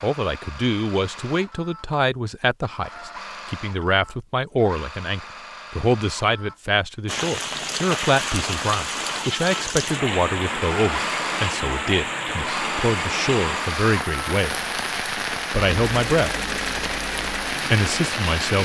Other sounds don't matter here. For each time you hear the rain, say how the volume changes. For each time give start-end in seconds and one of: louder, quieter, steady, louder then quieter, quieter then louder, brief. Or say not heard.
7.0-18.6 steady.